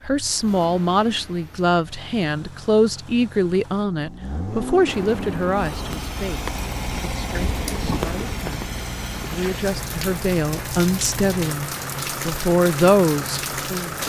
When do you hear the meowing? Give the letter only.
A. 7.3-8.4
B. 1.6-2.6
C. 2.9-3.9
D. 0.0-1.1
A.